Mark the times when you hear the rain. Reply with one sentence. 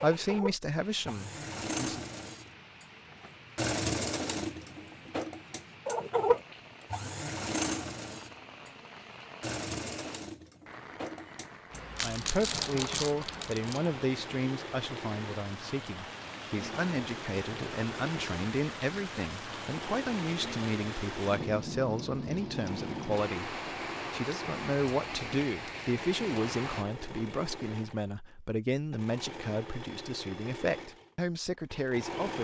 The rain can be heard from 0.0 to 26.9 s.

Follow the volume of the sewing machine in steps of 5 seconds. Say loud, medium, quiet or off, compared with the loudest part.
loud, loud, medium, medium, medium, medium, medium.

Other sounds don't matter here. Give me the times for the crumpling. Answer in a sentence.
The crumpling can be heard from 11.9 to 13.9 s.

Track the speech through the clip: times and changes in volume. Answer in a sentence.
You can hear the speech briefly from 0.0 to 2.0 s; and from 11.9 to 32.3 s, at a steady volume.